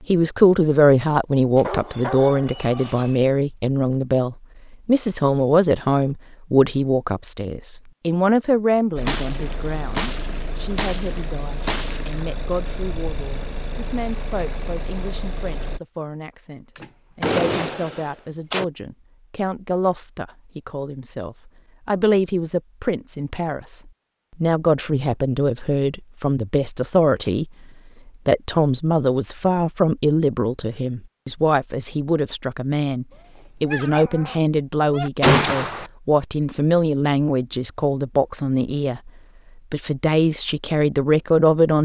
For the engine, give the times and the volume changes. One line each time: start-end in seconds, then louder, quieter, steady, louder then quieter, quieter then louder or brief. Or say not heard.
8.9-15.8 steady.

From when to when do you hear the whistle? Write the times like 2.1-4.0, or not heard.
not heard.